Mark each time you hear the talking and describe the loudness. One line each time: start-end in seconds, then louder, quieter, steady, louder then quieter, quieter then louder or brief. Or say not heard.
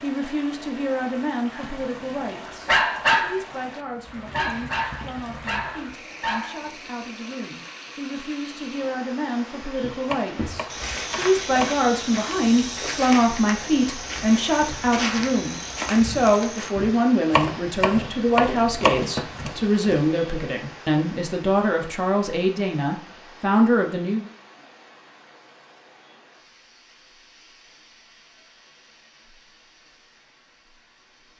0.0-24.3 louder.